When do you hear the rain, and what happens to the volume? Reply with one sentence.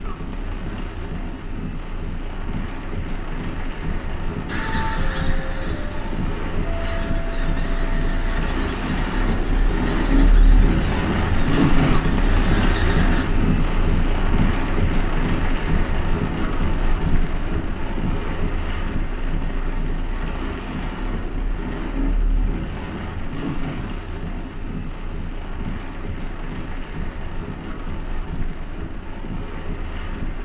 You can hear the rain from 0.0 to 30.4 s, getting louder then quieter.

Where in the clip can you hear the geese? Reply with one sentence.
The geese can be heard from 4.5 to 13.2 s.